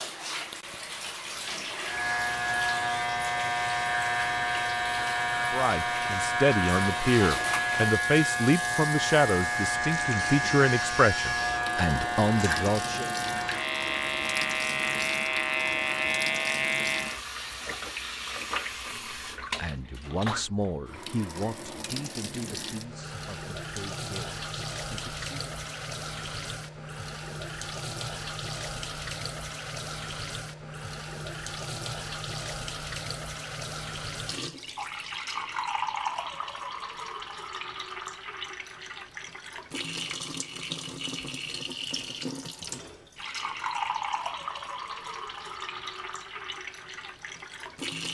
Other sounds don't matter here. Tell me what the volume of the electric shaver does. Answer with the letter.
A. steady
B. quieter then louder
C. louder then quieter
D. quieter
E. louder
A.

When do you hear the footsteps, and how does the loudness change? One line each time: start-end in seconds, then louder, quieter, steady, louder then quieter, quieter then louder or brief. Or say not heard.
not heard.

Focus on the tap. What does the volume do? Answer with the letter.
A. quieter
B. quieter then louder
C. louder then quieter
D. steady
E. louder
D.